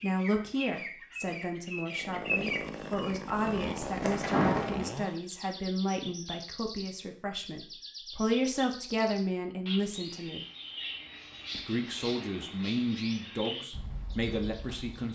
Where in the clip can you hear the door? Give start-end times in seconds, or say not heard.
4.2-4.9.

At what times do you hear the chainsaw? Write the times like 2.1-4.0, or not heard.
1.9-5.2.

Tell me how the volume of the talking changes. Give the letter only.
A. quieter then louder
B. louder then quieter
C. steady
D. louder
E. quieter
C.